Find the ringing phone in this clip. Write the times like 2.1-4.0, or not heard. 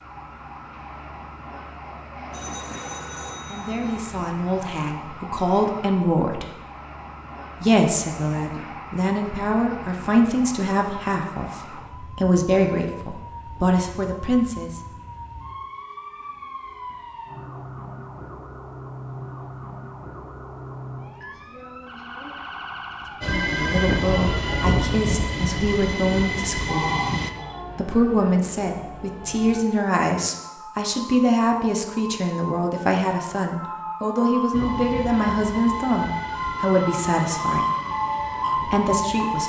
2.3-4.2, 23.2-24.1, 26.6-27.6.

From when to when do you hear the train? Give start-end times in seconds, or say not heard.
23.2-27.3, 34.5-39.4.